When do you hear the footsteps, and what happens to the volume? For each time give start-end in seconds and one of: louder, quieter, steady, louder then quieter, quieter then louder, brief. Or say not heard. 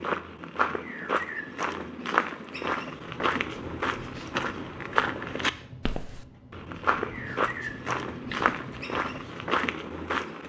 0.0-10.4 steady.